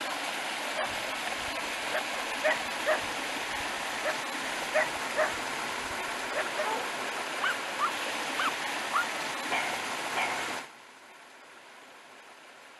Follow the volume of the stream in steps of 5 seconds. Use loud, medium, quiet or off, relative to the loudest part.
loud, loud, medium.